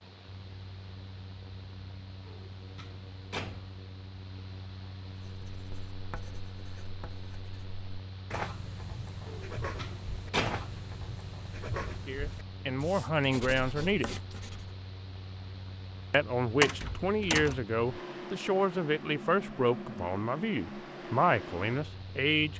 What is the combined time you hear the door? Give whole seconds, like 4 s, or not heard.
4 s.